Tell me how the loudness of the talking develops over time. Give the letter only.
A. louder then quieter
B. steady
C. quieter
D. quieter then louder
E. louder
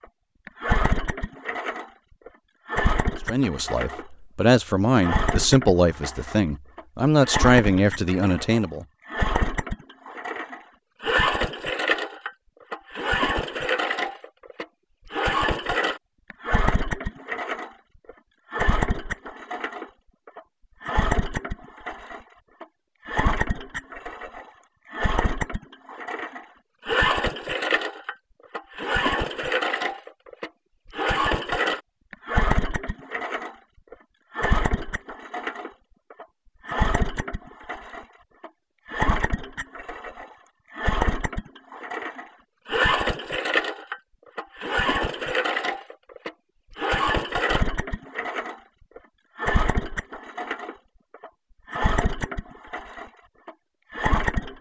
B.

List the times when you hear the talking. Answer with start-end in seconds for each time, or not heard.
3.2-8.8.